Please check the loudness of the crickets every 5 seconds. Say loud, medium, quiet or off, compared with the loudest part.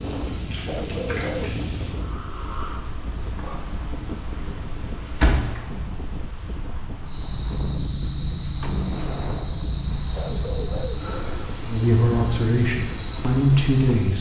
medium, loud, loud.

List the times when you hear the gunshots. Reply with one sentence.
The gunshots can be heard from 8.6 to 9.9 s.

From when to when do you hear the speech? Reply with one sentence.
You can hear the speech from 11.7 to 14.1 s.